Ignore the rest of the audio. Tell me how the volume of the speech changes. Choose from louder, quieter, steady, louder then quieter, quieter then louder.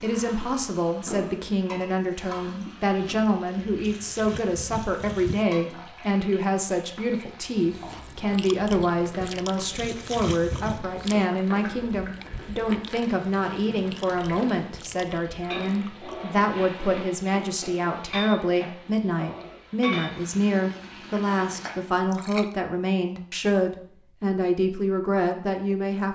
steady.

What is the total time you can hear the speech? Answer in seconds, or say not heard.
26 s.